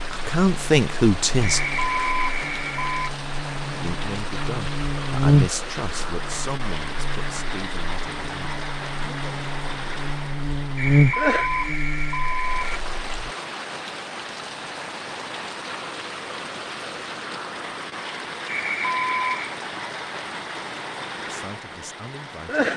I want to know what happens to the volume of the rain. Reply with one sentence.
The loudness of the rain stays about the same.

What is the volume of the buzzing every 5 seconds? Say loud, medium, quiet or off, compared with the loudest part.
quiet, loud, loud, off, off.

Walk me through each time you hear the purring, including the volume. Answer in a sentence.
You can't hear the purring here.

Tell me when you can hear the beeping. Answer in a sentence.
You can hear the beeping from 1.4 to 3.1 s, from 10.8 to 12.8 s and from 18.4 to 19.6 s.